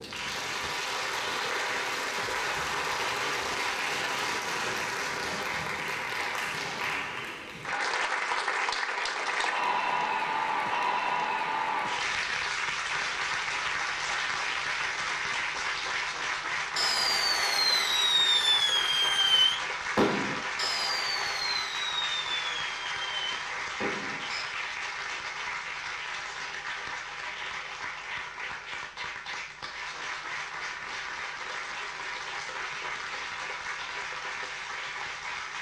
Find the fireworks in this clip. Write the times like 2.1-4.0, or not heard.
16.8-24.4.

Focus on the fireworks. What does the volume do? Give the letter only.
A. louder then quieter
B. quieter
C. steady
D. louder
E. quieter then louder
B.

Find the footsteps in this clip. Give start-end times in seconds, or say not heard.
not heard.